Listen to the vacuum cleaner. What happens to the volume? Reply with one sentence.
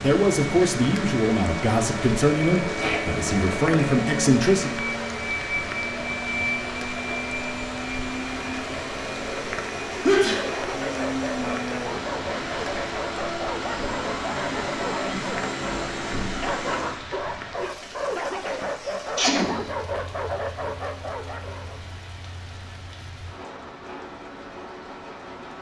The loudness of the vacuum cleaner stays about the same.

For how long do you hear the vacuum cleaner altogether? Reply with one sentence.
The vacuum cleaner can be heard for 17 seconds in total.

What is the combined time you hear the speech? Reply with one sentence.
You can hear the speech for 5 seconds altogether.